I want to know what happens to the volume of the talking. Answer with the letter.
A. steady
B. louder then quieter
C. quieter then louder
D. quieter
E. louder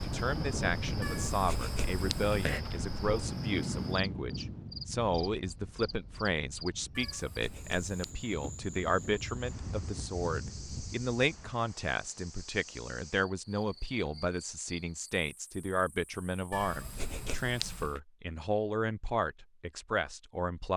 A.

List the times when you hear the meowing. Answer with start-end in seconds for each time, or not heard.
1.0-2.6, 7.0-8.2, 16.5-18.0.